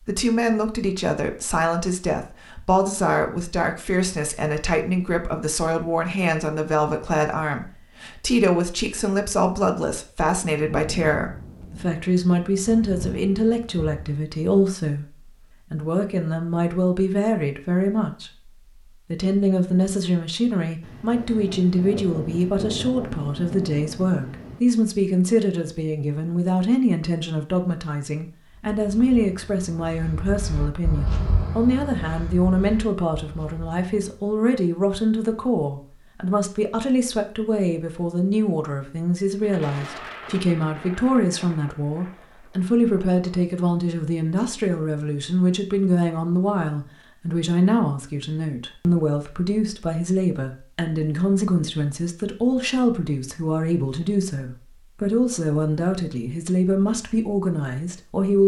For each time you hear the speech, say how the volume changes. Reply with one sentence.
You can hear the speech from 0.1 to 18.5 s, at a steady volume; and from 19.1 to 58.4 s, at a steady volume.